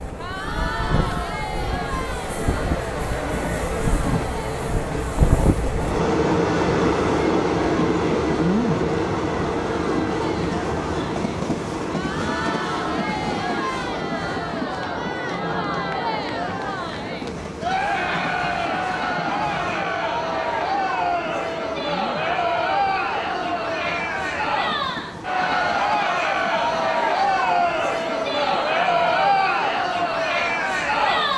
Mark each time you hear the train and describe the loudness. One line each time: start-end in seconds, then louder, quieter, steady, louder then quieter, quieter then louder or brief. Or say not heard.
0.0-31.3 quieter.